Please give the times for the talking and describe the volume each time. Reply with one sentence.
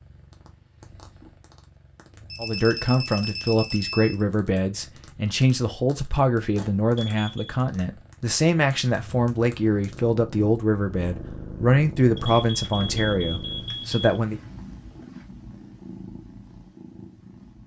The talking can be heard from 2.4 to 14.4 s, at a steady volume.